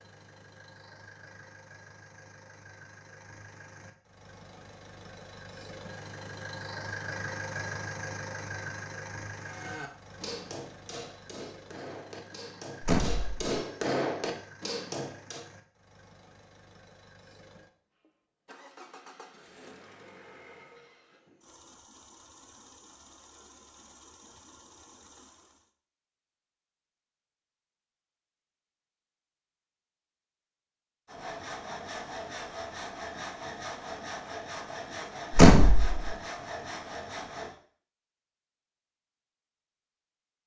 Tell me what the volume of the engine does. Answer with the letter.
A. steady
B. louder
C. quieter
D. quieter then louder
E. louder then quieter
E.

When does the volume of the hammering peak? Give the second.
14 s.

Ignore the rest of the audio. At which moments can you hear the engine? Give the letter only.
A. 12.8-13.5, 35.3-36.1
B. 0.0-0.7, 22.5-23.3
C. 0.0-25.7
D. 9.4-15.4
C.